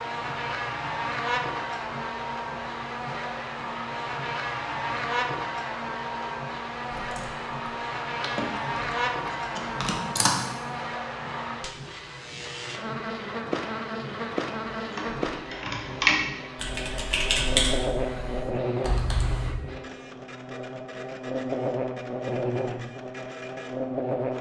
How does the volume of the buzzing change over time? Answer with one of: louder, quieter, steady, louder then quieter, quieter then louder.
steady.